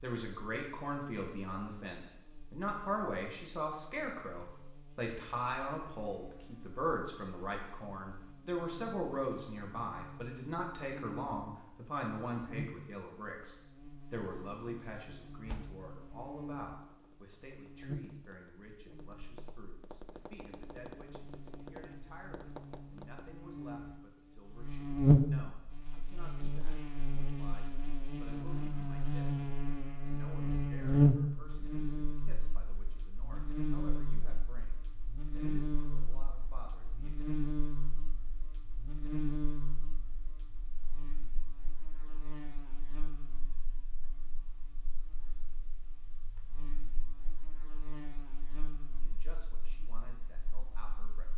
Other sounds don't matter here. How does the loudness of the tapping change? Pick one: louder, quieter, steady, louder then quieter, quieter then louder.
louder.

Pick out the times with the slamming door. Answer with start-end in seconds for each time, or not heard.
15.4-15.9.